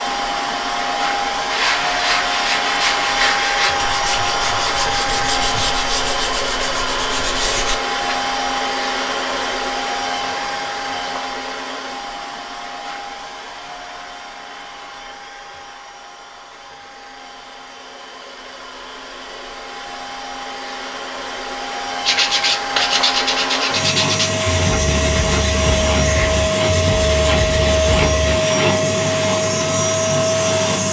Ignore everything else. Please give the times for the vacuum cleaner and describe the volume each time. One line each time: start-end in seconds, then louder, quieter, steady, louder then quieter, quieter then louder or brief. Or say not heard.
0.0-30.8 quieter then louder.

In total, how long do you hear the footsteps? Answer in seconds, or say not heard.
not heard.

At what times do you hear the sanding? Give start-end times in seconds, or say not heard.
1.4-8.2, 22.1-28.4.